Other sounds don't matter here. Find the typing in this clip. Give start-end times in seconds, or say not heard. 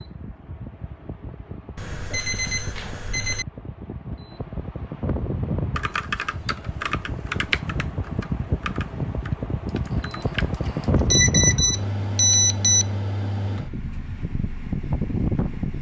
5.8-10.9.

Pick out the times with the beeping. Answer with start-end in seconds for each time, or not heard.
1.8-3.5, 10.7-12.8.